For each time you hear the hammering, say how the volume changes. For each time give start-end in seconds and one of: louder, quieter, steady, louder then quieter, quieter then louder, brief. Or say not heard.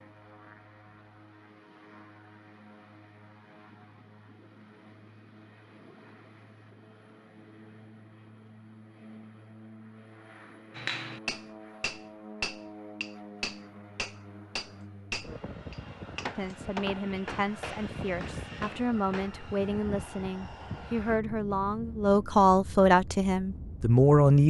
10.8-19.3 quieter.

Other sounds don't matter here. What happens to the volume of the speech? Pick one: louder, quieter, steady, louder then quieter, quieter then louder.
louder.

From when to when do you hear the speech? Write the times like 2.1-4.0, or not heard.
16.4-24.4.